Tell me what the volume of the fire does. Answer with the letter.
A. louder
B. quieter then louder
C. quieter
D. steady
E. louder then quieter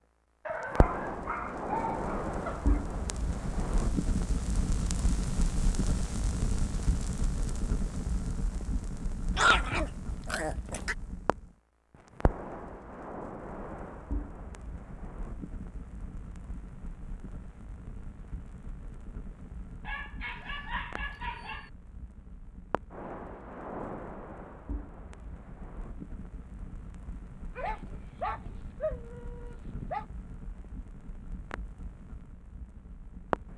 C.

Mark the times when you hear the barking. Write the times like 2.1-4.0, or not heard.
0.5-2.8, 9.3-10.9, 19.8-21.7, 27.6-30.1.